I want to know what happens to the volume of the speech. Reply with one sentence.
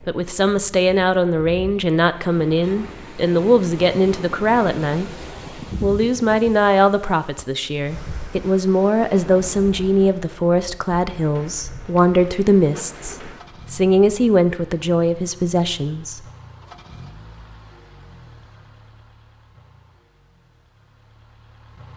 The loudness of the speech stays about the same.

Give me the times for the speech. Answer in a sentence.
The speech can be heard from 0.1 to 5.2 s and from 5.8 to 16.2 s.